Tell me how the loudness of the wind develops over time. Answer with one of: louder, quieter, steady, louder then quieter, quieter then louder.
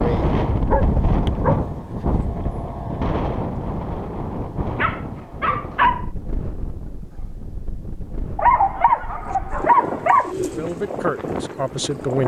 quieter then louder.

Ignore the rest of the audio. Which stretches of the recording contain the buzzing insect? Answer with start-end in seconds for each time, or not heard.
not heard.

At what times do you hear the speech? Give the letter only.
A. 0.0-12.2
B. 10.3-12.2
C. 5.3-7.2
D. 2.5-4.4
B.